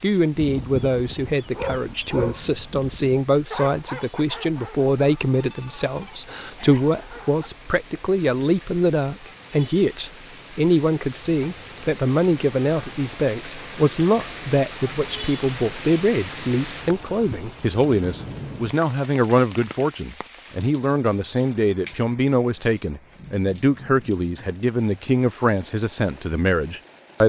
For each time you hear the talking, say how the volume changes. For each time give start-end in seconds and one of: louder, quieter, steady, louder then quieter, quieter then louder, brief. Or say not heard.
0.0-27.2 steady.